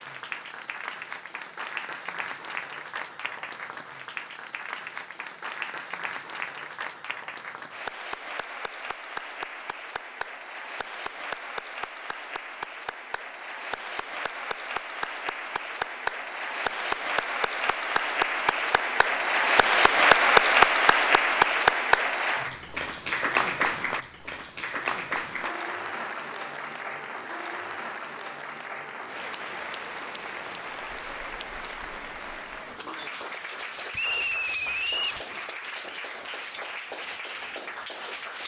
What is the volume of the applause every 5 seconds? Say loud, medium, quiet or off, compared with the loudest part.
quiet, quiet, quiet, medium, loud, quiet, quiet, quiet.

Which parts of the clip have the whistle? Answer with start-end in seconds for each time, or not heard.
33.9-35.2.